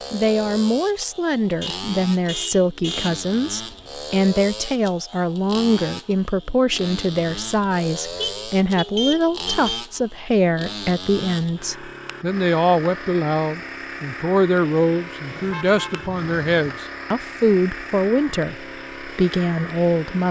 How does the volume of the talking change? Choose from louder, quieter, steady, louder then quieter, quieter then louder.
steady.